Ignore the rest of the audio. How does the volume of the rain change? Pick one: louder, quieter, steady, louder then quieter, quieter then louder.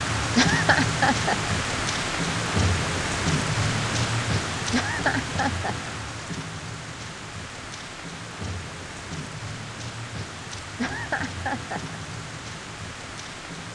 quieter.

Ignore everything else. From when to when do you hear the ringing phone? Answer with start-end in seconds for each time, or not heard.
not heard.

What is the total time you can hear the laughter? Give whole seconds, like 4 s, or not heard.
4 s.